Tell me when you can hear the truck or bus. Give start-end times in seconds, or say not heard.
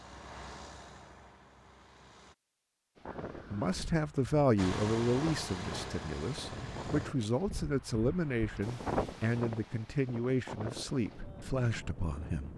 0.0-2.4, 4.5-7.1.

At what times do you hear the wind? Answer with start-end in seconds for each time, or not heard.
3.0-12.5.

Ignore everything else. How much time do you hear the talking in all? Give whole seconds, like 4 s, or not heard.
9 s.